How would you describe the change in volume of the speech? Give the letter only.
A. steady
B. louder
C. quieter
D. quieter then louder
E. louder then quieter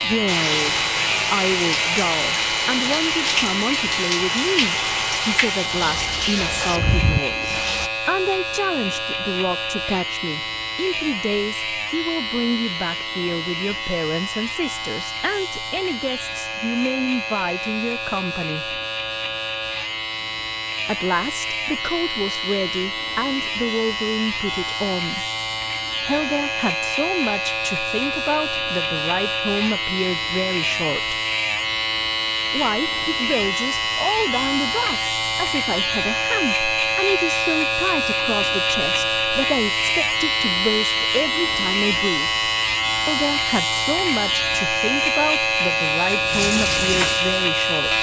A.